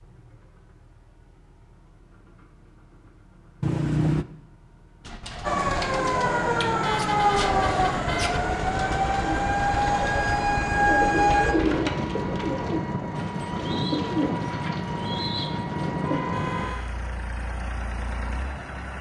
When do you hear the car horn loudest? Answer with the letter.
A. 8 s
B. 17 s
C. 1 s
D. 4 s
D.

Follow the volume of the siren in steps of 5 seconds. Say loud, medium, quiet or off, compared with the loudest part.
off, loud, loud, off.